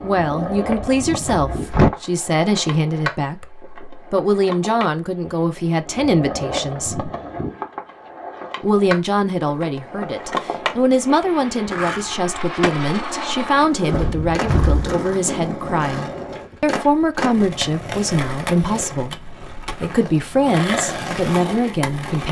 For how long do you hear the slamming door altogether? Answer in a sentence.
You can hear the slamming door for 2 seconds altogether.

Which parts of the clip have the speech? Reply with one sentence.
You can hear the speech from 0.0 to 7.1 s and from 8.6 to 22.2 s.